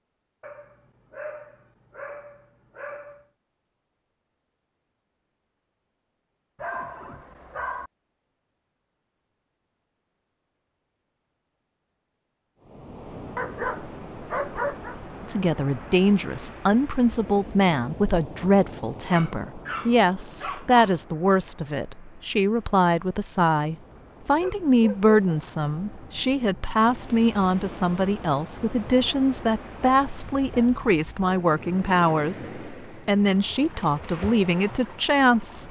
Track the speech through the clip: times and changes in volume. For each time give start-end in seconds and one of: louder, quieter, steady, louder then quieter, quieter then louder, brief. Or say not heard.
15.2-35.6 steady.